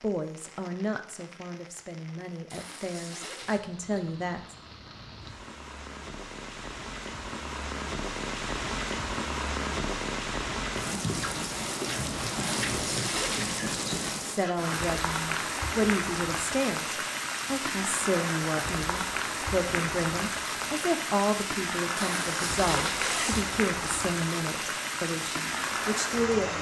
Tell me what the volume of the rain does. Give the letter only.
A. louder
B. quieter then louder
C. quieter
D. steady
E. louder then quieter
A.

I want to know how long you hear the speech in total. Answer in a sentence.
The speech can be heard for 17 seconds in total.